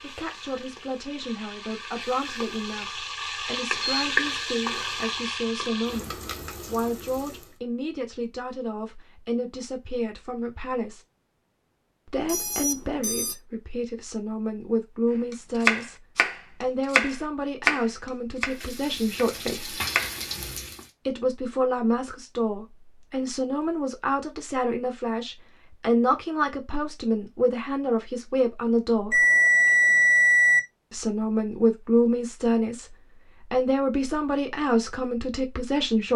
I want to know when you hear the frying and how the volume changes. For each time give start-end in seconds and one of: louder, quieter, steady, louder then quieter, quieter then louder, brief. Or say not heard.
0.0-7.6 louder then quieter
18.4-20.9 brief.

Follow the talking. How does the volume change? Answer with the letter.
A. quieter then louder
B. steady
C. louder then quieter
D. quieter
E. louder
E.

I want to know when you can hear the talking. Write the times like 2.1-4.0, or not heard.
0.0-11.0, 12.1-16.0, 16.6-19.8, 21.1-29.2, 30.9-36.1.